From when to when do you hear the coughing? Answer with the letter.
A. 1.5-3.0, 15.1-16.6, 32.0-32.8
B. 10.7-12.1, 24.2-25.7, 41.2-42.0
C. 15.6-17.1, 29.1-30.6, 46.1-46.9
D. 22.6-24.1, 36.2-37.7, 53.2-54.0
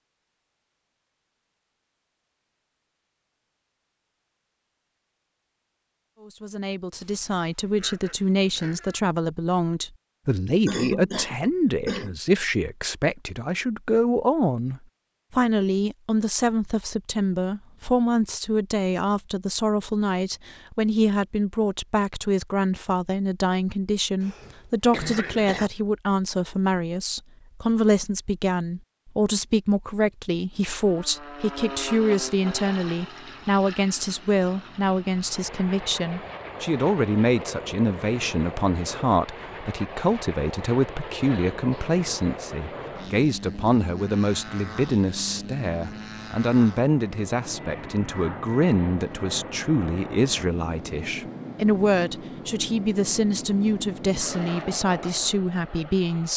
B.